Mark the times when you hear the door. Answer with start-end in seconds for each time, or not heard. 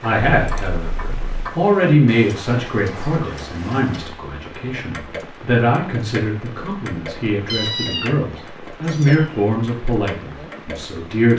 not heard.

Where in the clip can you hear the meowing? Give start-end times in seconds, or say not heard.
0.4-1.5, 7.5-9.4.